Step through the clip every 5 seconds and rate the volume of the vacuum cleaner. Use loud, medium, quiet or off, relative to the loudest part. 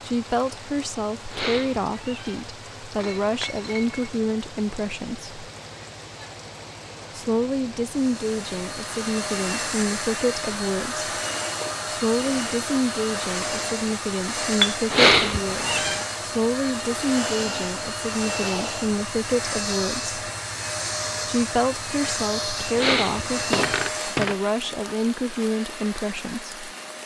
off, loud, loud, loud, loud, medium.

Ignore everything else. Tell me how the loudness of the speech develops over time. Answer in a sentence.
The volume of the speech stays about the same.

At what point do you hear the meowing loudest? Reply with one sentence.
The volume of the meowing peaks at 15 seconds.